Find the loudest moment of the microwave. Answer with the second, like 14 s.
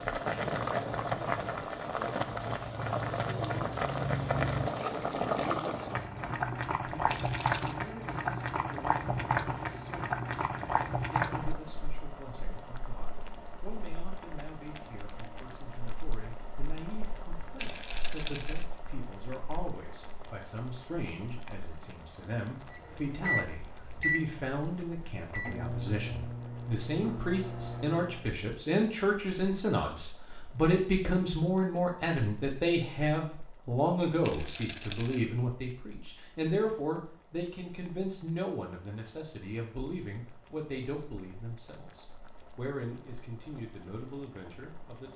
24 s.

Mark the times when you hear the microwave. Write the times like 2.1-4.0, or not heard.
22.7-28.4.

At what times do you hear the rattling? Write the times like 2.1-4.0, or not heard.
7.0-7.8, 17.6-18.6, 34.2-35.2.